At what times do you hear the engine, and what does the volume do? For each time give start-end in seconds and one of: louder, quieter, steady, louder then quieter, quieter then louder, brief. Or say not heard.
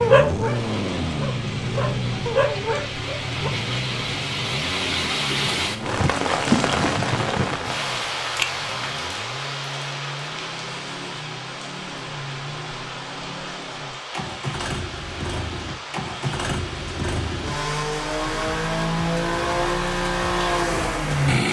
0.0-21.4 quieter then louder.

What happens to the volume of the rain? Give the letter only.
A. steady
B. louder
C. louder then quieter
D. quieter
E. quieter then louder
C.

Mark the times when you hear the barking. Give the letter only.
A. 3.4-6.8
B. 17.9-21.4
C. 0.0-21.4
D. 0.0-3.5
D.